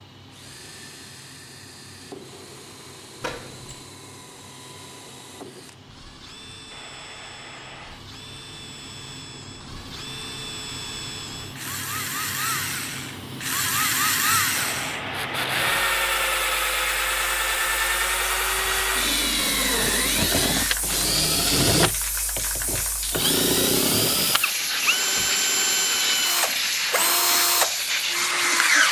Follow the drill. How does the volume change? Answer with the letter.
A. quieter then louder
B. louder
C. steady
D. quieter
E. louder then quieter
B.